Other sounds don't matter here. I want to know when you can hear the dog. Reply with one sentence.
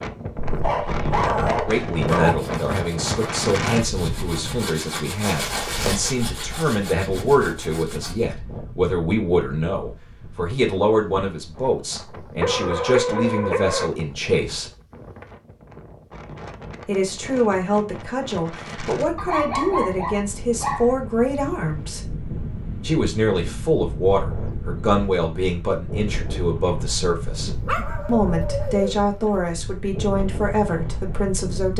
The dog can be heard from 0.4 to 2.4 s, from 12.4 to 13.9 s, from 19.1 to 20.9 s and from 27.4 to 29.5 s.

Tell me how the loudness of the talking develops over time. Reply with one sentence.
The loudness of the talking stays about the same.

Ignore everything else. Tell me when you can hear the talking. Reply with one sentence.
You can hear the talking from 1.6 to 14.7 s, from 16.9 to 22.0 s and from 22.8 to 31.7 s.